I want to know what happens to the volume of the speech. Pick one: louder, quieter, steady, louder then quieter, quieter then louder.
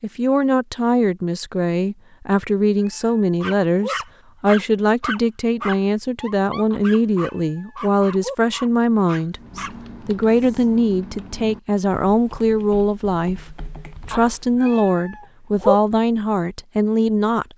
steady.